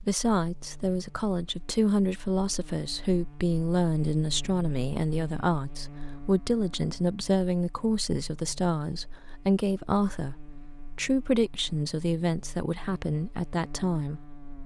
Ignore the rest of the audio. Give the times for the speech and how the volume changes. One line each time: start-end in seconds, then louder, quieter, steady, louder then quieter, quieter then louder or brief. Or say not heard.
0.0-14.2 steady.